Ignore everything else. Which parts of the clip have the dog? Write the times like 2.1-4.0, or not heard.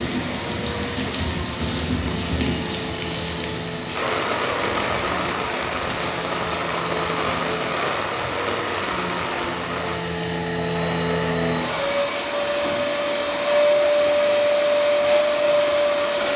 not heard.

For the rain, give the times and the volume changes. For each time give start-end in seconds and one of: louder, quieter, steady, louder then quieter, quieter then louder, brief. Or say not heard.
0.0-16.3 quieter.